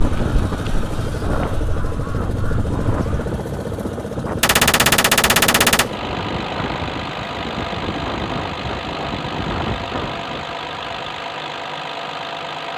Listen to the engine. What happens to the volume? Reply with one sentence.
The loudness of the engine stays about the same.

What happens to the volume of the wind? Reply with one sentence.
The volume of the wind stays about the same.